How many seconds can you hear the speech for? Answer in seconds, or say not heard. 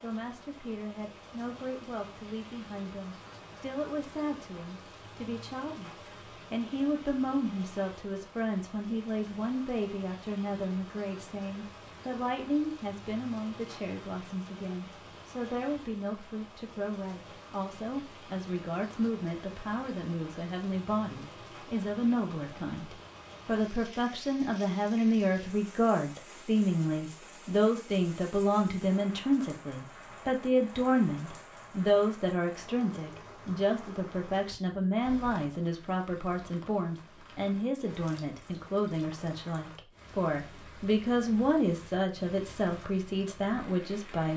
44 s.